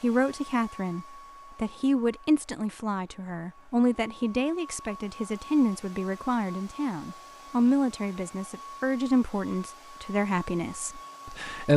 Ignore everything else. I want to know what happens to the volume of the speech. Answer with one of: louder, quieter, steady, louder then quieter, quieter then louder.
steady.